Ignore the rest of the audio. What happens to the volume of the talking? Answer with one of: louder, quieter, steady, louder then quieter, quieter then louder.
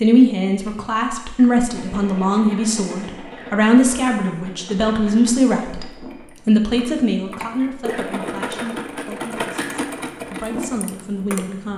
quieter.